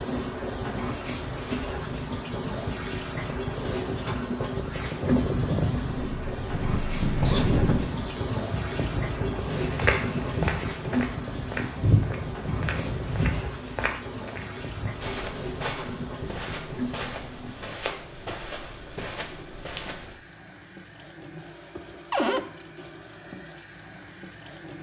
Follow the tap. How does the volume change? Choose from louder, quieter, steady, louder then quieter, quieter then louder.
quieter.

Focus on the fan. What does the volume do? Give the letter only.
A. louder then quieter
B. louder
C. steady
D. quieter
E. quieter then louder
A.